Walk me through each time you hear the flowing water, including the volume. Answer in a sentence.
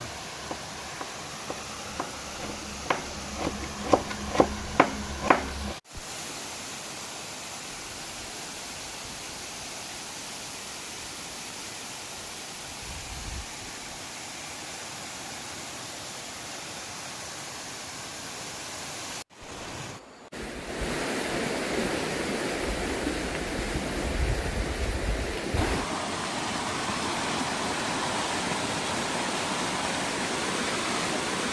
The flowing water can be heard from 0.0 to 31.4 s, getting louder.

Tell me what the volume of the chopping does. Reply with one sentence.
The volume of the chopping goes up.